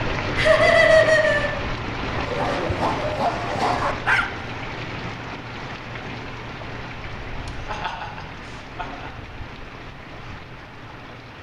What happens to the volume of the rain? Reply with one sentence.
The volume of the rain goes down.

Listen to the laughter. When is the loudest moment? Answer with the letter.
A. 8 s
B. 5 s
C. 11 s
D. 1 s
D.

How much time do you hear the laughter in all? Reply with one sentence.
The laughter can be heard for 3 seconds in total.